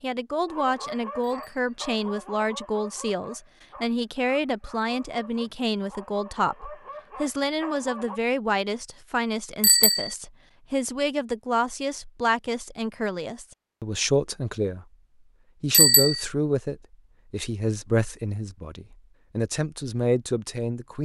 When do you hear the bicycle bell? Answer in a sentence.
The bicycle bell can be heard from 1.2 to 1.8 s, from 9.6 to 10.2 s and from 15.7 to 16.2 s.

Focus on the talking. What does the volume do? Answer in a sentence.
The loudness of the talking stays about the same.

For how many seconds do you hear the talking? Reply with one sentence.
You can hear the talking for 20 seconds altogether.